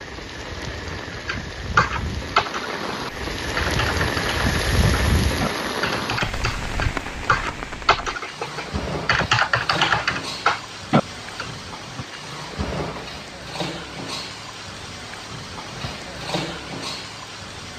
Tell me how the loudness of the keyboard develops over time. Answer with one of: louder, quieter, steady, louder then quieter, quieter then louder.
quieter then louder.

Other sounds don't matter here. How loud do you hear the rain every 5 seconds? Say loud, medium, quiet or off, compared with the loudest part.
loud, loud, medium, medium.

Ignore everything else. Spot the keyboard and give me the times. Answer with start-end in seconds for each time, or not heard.
1.1-11.5.